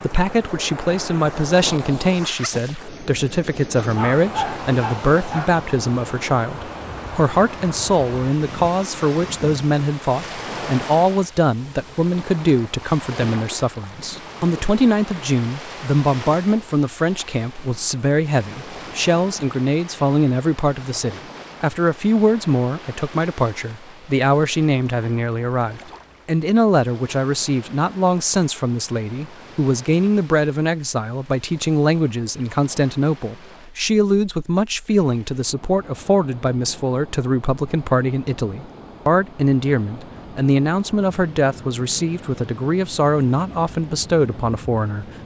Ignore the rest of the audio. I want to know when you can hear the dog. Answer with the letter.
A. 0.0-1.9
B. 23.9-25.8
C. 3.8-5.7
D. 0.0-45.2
C.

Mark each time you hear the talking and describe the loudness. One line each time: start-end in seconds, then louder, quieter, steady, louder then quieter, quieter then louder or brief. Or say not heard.
0.0-45.2 steady.